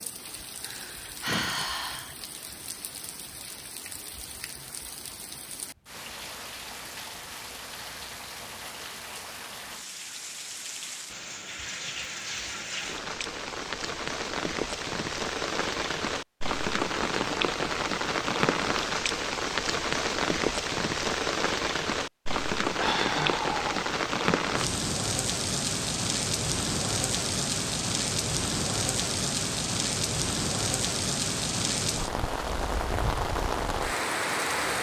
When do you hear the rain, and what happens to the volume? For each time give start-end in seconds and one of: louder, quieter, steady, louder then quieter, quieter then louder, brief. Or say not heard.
0.0-34.7 louder.